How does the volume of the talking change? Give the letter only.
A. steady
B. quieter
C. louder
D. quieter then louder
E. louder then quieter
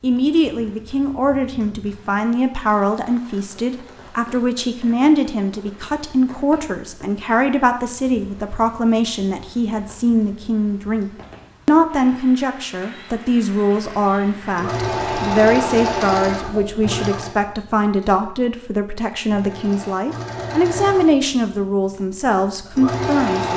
A.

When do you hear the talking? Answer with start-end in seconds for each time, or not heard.
0.0-23.5.